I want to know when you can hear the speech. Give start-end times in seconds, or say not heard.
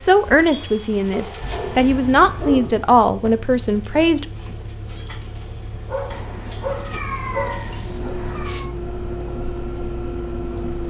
0.0-4.2.